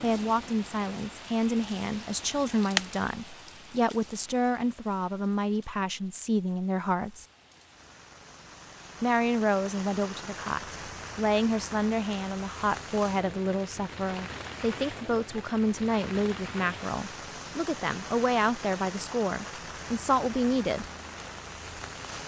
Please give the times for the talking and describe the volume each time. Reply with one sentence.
The talking can be heard from 0.0 to 7.2 s, at a steady volume; and from 9.0 to 20.9 s, at a steady volume.